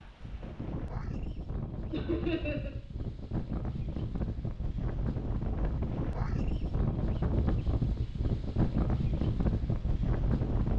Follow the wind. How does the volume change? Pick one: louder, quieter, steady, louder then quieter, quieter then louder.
louder.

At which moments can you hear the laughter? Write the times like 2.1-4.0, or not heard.
1.9-2.7.